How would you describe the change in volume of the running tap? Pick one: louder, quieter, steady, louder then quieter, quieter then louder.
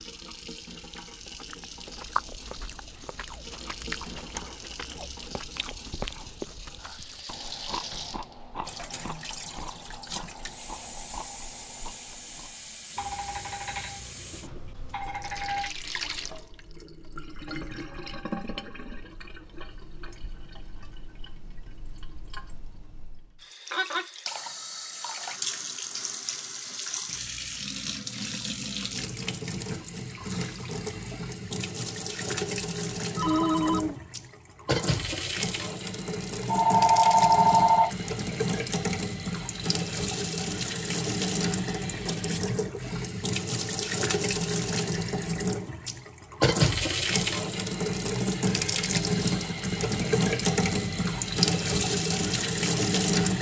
louder.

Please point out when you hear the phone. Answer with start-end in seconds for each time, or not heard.
12.9-15.7, 33.1-34.0, 36.5-37.9.